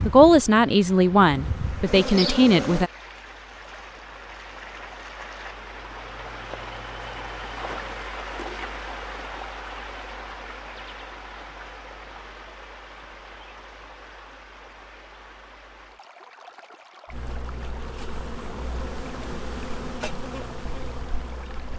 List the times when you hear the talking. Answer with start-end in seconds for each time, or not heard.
0.1-2.9.